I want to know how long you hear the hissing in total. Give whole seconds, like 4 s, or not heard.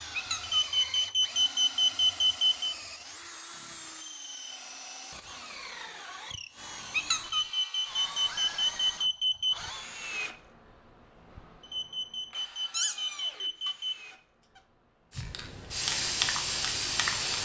2 s.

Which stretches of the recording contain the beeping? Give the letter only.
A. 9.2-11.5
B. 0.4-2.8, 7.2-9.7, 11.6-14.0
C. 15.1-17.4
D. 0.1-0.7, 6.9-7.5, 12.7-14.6
B.